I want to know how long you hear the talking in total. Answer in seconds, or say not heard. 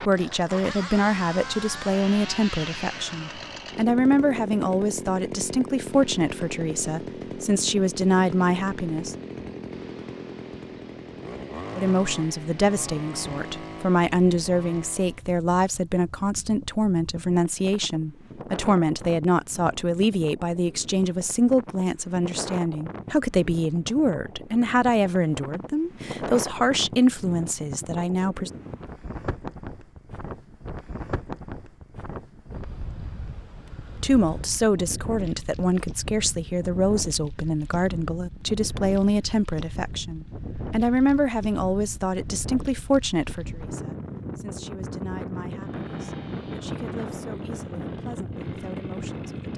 41 s.